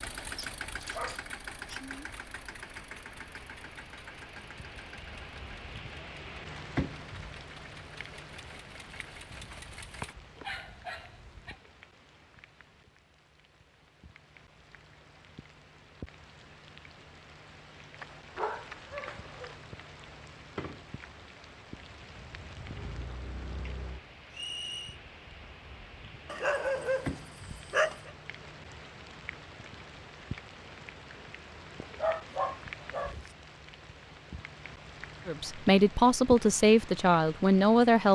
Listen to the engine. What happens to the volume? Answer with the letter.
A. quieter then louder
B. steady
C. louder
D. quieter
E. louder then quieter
D.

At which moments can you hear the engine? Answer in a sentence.
You can hear the engine from 0.0 to 10.2 s.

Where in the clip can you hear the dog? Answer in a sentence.
You can hear the dog from 0.3 to 1.8 s, from 9.3 to 11.6 s, from 18.0 to 19.6 s, from 26.2 to 28.1 s and from 31.8 to 33.3 s.